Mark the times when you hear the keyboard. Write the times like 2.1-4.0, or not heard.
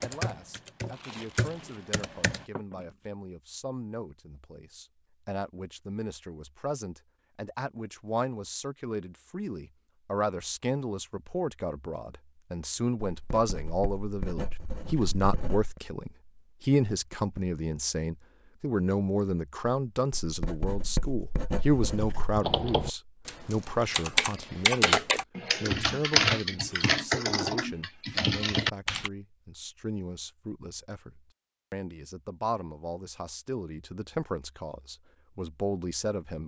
0.0-2.5, 22.4-29.1.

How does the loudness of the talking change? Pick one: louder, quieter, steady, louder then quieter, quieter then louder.
louder then quieter.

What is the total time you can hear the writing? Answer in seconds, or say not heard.
5 s.